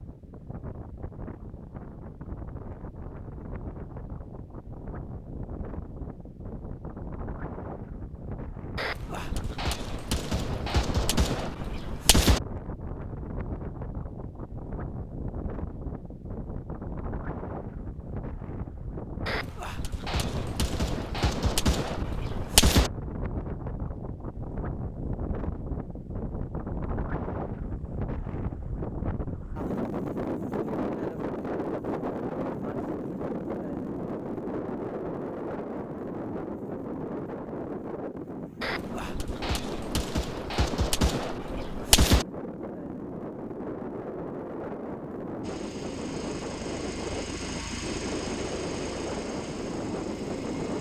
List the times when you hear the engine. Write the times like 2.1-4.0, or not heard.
45.4-50.7.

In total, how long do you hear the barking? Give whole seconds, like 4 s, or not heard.
not heard.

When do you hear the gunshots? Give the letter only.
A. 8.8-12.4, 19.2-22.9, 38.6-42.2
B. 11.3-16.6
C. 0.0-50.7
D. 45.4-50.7
A.